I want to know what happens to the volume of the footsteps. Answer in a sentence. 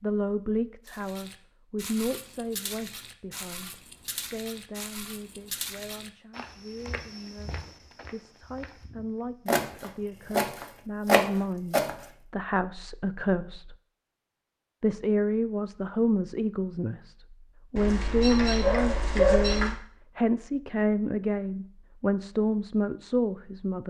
The volume of the footsteps goes down.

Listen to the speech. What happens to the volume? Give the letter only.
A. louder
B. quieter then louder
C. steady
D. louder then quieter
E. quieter
B.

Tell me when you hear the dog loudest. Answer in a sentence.
The volume of the dog peaks at 19 seconds.